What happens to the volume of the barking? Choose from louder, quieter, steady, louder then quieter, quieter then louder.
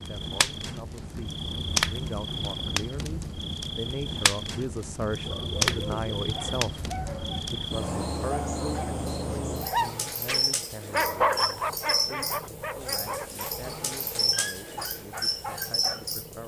louder then quieter.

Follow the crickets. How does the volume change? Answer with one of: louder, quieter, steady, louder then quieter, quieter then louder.
steady.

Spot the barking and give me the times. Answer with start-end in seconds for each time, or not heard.
5.2-16.1.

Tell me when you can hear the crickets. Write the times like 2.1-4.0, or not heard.
0.0-16.4.